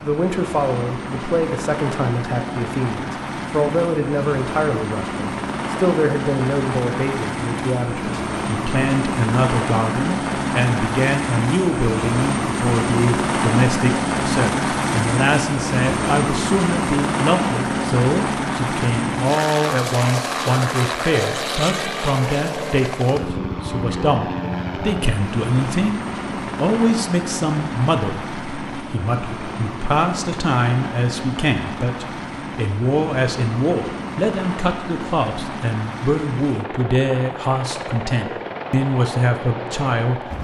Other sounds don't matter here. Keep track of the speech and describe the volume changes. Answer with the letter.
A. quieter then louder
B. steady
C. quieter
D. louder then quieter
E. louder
B.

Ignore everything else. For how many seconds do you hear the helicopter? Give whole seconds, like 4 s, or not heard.
40 s.